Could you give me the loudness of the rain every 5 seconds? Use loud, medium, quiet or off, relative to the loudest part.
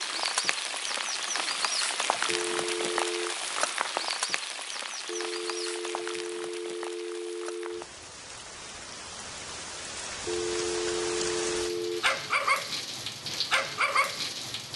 loud, medium, loud.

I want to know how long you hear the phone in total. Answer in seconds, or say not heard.
6 s.